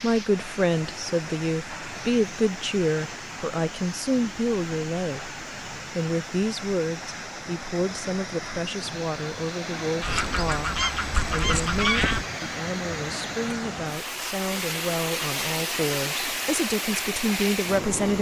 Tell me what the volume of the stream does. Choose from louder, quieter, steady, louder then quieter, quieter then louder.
louder.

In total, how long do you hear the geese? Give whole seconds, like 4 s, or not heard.
2 s.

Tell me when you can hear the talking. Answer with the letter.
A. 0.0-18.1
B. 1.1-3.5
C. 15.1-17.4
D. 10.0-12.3
A.